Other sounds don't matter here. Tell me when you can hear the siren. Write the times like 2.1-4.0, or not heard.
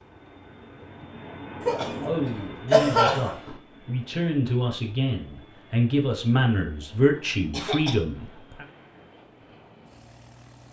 not heard.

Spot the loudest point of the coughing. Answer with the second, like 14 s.
3 s.